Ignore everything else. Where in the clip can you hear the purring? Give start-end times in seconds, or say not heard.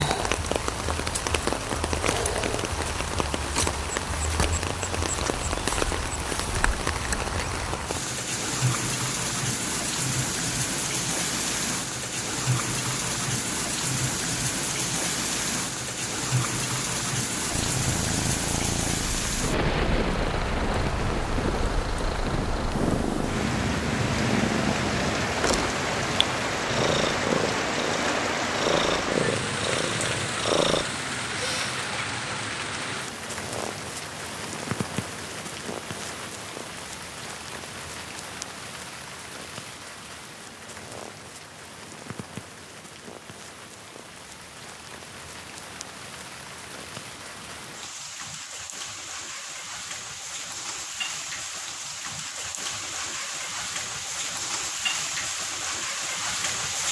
17.4-30.9.